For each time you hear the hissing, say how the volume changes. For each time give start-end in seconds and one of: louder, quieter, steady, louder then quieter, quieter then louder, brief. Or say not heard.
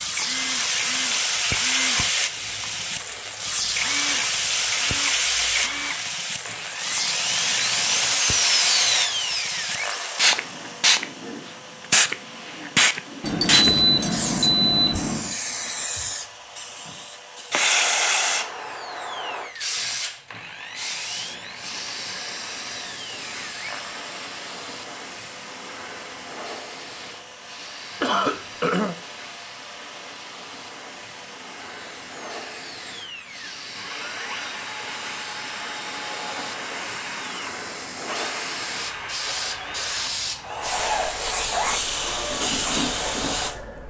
0.0-43.8 quieter then louder.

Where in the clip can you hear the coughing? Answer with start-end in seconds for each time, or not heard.
28.0-28.9.